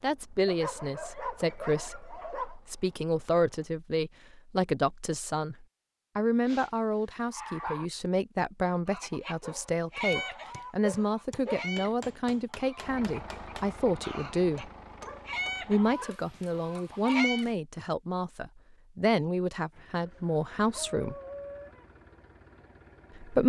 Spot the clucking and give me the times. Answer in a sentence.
The clucking can be heard from 8.8 to 17.4 s.